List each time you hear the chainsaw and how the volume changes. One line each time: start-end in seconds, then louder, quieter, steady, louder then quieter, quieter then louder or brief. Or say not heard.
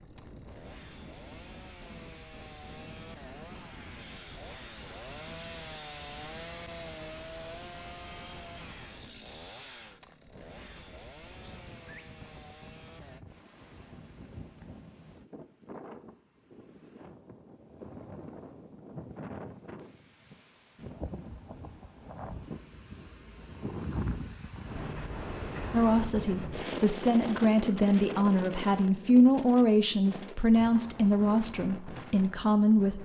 0.0-13.2 louder then quieter.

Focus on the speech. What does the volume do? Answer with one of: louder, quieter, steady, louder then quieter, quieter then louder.
louder then quieter.